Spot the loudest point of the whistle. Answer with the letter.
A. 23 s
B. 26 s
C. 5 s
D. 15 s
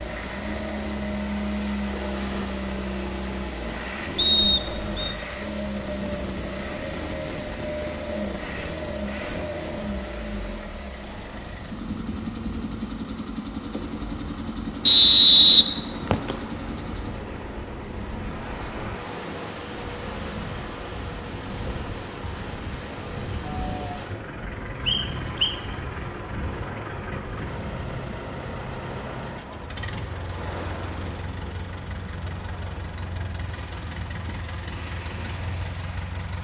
D.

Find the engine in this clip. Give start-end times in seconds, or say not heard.
0.0-36.3.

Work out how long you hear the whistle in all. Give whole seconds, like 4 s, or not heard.
3 s.